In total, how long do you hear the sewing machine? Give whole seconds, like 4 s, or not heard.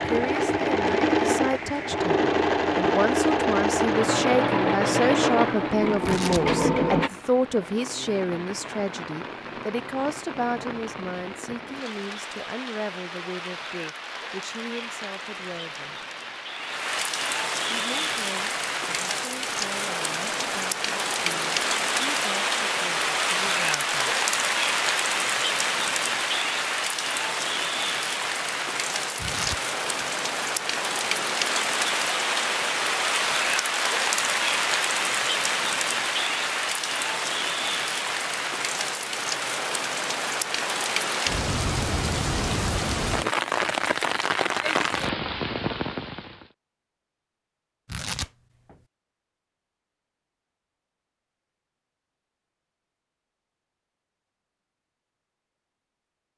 7 s.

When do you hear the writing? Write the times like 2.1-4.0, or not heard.
not heard.